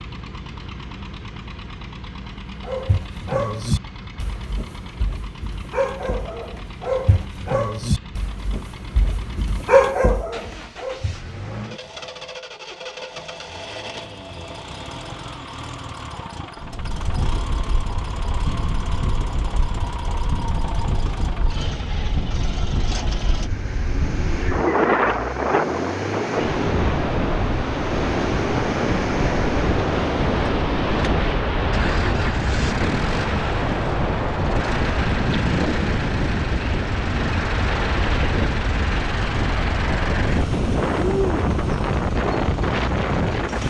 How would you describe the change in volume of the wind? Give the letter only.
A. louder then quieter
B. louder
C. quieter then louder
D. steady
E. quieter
B.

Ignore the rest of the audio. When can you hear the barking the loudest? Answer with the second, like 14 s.
10 s.